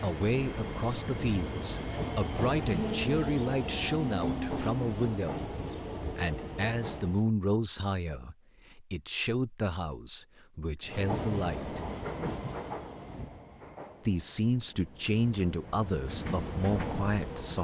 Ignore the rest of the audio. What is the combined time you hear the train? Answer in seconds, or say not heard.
14 s.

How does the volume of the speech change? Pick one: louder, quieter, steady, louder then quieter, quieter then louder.
steady.